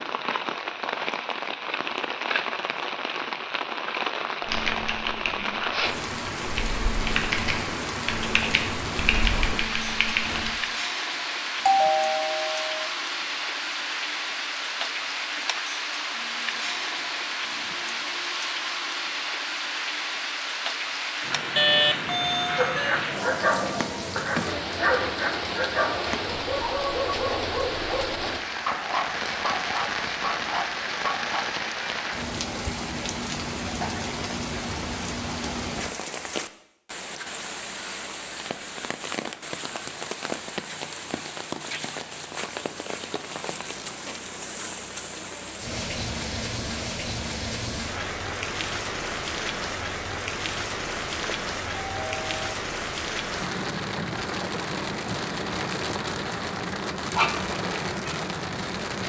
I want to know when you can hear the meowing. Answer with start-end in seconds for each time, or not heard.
not heard.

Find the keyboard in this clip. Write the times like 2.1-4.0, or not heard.
4.5-10.6.